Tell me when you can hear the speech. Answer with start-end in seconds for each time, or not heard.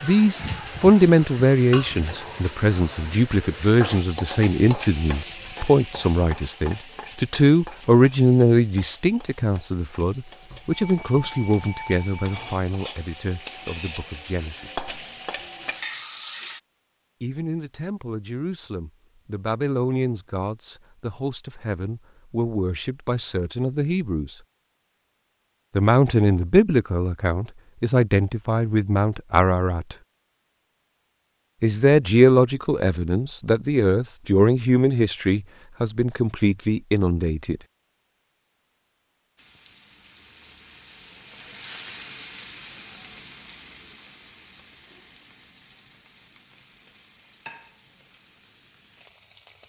0.0-14.8, 17.2-24.4, 25.8-29.9, 31.6-37.6.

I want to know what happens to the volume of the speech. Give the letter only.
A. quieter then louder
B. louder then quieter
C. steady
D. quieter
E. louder
A.